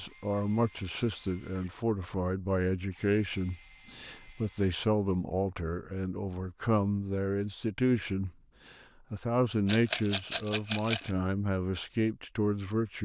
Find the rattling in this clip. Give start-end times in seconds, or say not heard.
9.7-11.2.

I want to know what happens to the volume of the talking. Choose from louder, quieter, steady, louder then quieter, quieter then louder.
steady.